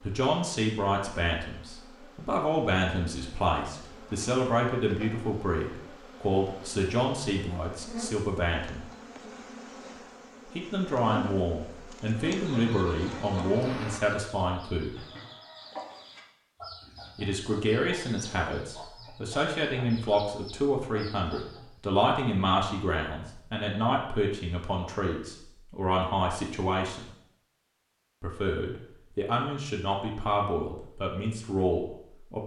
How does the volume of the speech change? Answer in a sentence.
The loudness of the speech stays about the same.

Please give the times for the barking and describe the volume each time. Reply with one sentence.
The barking can't be heard in this clip.